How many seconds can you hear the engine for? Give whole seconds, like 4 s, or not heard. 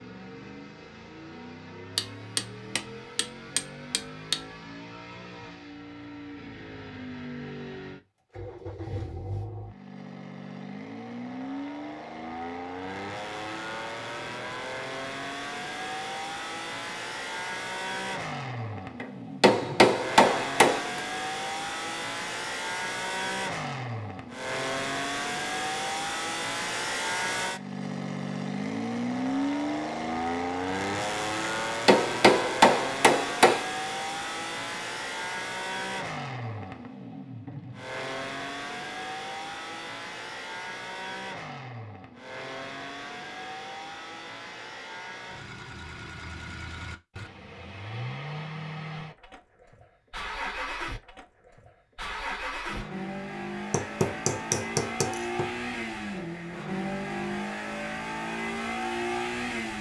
60 s.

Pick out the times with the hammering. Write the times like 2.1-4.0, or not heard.
1.9-4.3, 19.0-21.0, 31.4-33.6, 53.7-55.5.